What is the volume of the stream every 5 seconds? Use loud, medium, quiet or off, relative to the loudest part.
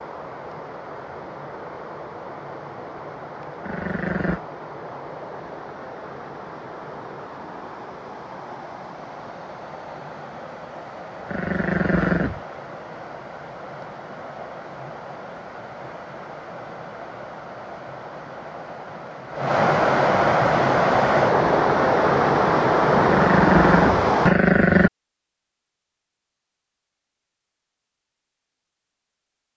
quiet, quiet, quiet, medium, loud, off.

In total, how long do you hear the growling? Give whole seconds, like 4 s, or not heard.
4 s.